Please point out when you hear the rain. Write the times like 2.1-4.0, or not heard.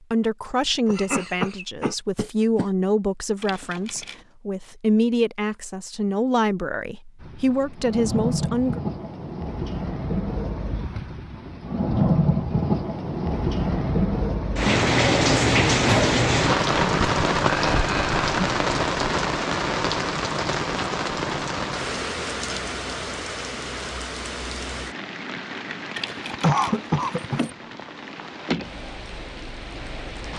7.2-30.3.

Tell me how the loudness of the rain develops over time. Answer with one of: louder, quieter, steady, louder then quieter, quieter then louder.
louder then quieter.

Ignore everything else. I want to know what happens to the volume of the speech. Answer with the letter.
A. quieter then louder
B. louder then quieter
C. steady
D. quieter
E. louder
C.